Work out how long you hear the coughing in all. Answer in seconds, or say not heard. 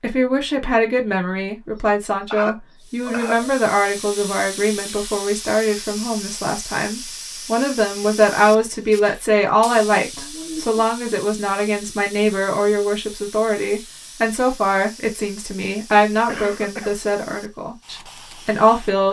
3 s.